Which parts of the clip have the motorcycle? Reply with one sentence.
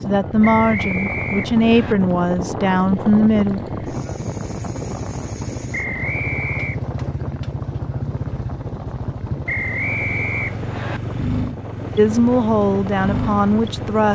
You can hear the motorcycle from 0.1 to 14.1 s.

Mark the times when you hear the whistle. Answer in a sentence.
You can hear the whistle from 0.4 to 1.9 s, from 5.7 to 6.8 s and from 9.4 to 11.0 s.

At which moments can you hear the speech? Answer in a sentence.
You can hear the speech from 0.1 to 3.6 s and from 11.9 to 14.1 s.